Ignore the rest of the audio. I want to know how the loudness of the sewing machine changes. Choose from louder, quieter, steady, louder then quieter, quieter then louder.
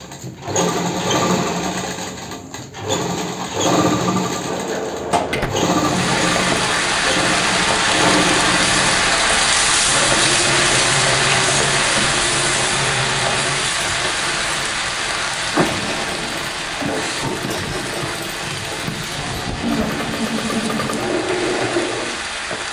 quieter then louder.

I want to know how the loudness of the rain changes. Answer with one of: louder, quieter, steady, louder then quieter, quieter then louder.
quieter.